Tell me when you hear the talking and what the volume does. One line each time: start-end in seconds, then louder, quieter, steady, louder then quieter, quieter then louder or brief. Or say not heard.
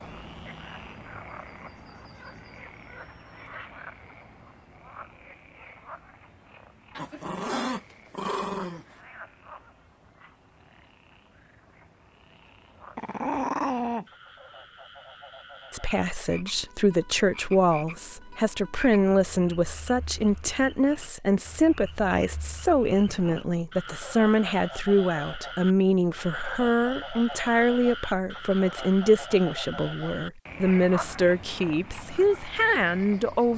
15.7-33.5 steady.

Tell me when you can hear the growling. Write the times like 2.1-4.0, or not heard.
7.0-9.0, 12.9-14.1, 23.1-23.6.